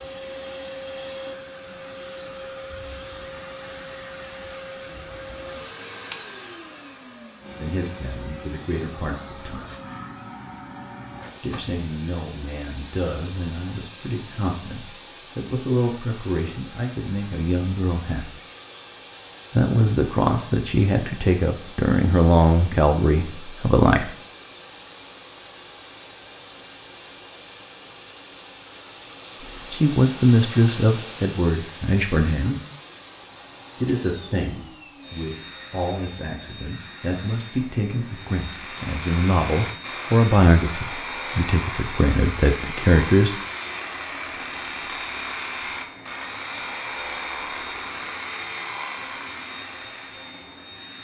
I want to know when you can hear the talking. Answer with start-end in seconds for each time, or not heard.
7.6-9.7, 11.4-18.3, 19.5-24.1, 29.7-32.6, 33.8-43.4.